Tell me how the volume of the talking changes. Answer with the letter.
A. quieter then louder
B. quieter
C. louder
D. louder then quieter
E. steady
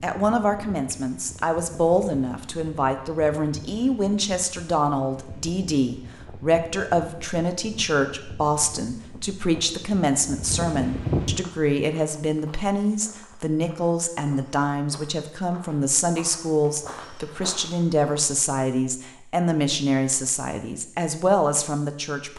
E.